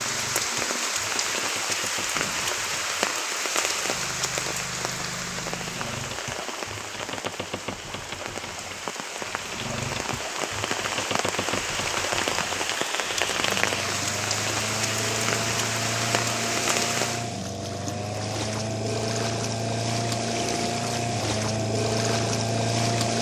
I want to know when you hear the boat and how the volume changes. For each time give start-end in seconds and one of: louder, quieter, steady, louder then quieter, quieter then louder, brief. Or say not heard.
0.0-23.1 louder.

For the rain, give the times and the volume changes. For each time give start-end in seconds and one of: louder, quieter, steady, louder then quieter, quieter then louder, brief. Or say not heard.
0.0-17.3 quieter then louder.